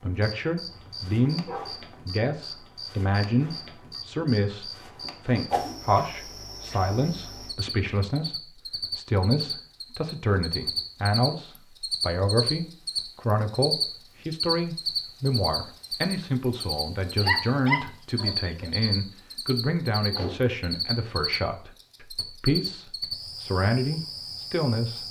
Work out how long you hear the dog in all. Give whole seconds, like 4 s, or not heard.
3 s.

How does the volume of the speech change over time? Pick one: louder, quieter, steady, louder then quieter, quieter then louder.
steady.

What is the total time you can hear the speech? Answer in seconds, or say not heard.
25 s.